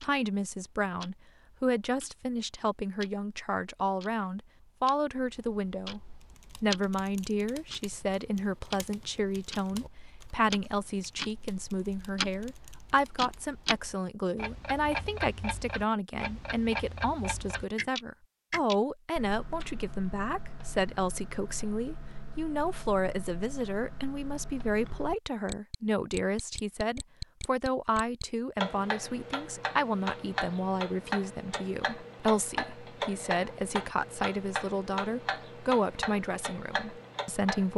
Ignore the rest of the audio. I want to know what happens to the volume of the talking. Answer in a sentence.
The volume of the talking stays about the same.